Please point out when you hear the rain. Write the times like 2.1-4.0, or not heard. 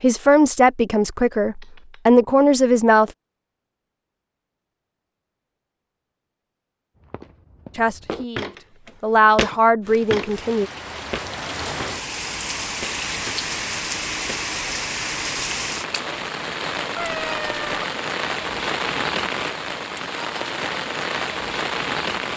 9.8-22.3.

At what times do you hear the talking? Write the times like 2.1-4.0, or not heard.
0.0-3.1, 7.8-10.7.